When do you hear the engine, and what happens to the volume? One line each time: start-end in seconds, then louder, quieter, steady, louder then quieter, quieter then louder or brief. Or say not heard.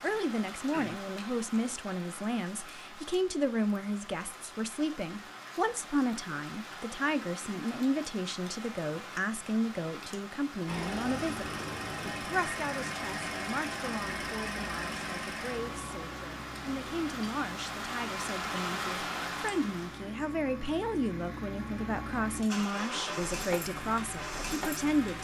10.7-25.1 quieter then louder.